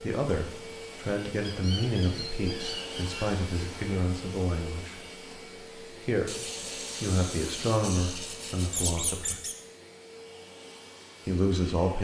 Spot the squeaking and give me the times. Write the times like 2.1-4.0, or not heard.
1.4-3.4, 8.7-9.6.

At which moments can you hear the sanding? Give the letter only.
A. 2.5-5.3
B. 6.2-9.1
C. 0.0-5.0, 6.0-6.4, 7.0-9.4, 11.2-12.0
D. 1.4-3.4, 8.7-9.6
B.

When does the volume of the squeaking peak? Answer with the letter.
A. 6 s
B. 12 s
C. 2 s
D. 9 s
D.